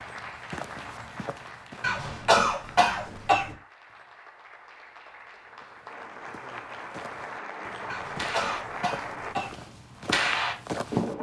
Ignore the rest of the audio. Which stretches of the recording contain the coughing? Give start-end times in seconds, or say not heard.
1.8-3.5, 7.8-9.6.